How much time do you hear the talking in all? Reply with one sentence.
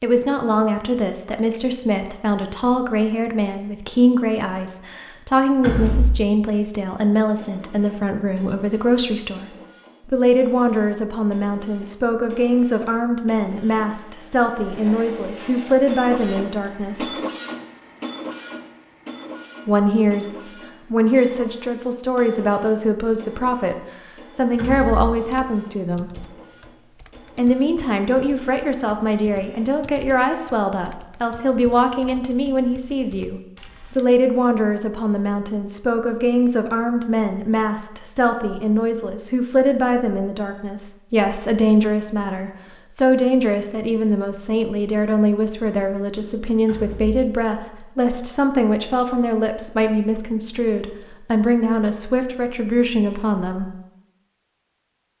You can hear the talking for 50 seconds altogether.